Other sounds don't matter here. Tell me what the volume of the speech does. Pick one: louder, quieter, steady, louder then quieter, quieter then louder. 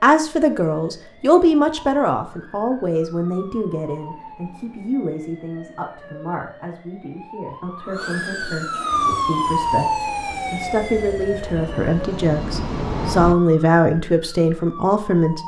quieter then louder.